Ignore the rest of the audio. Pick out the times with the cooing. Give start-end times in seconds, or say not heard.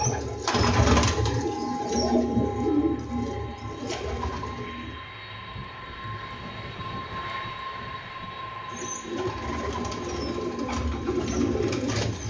0.0-5.0, 8.7-12.2.